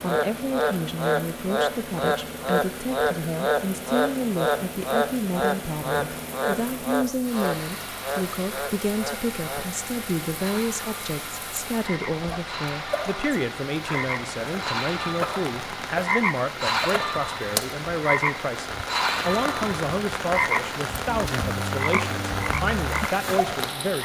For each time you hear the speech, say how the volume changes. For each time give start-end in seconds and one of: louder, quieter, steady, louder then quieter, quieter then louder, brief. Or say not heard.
0.0-24.0 steady.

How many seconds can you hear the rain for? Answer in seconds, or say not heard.
24 s.